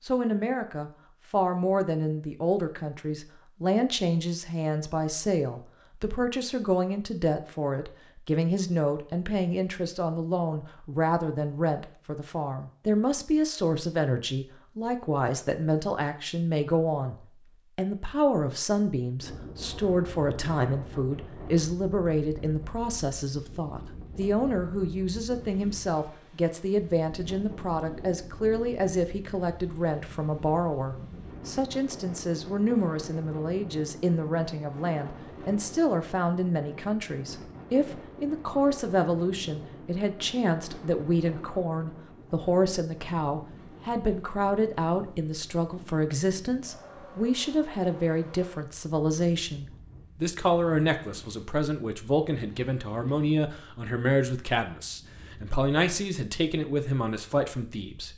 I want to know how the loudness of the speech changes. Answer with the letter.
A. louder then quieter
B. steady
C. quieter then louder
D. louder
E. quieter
B.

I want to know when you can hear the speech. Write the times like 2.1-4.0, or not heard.
0.0-17.1, 17.8-58.1.